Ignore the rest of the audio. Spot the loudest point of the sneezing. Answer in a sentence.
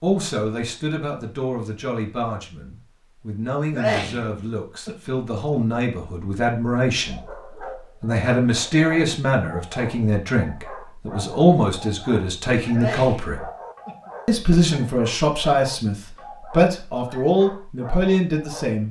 The loudest moment of the sneezing is at 4 seconds.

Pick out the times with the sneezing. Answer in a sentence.
The sneezing can be heard from 3.7 to 5.5 s and from 12.7 to 14.6 s.